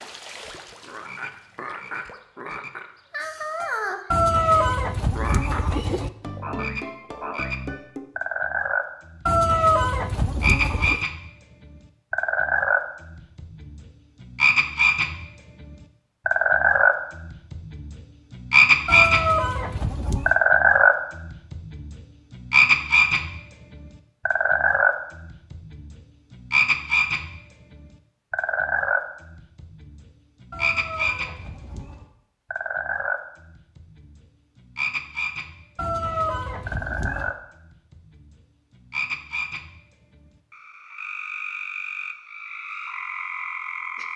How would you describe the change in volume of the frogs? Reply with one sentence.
The loudness of the frogs goes up, then down.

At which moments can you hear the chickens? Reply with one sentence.
You can hear the chickens from 4.1 to 6.1 s, from 9.2 to 11.1 s, from 18.9 to 20.4 s, from 30.5 to 32.0 s and from 35.8 to 37.4 s.